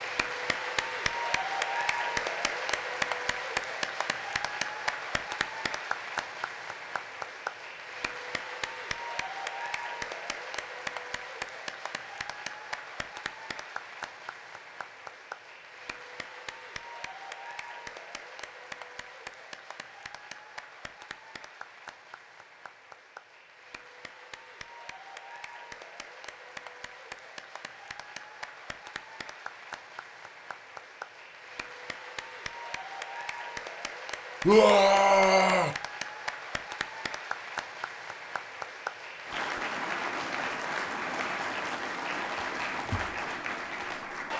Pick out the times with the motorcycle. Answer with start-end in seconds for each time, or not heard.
not heard.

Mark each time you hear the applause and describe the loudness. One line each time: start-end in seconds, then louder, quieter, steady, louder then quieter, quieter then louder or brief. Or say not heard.
0.0-44.3 quieter then louder.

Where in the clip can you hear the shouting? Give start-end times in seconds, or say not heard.
34.5-35.7.